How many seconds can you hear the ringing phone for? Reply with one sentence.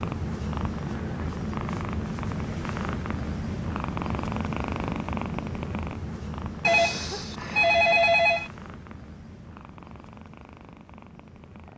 You can hear the ringing phone for 2 seconds altogether.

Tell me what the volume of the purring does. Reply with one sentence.
The volume of the purring goes down.